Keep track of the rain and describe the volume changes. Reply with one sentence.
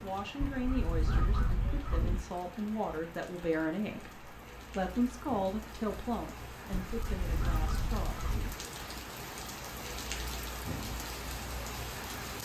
The volume of the rain goes up.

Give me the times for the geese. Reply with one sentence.
You can hear the geese from 0.4 to 2.2 s and from 6.7 to 8.6 s.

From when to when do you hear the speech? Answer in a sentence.
The speech can be heard from 0.0 to 8.2 s.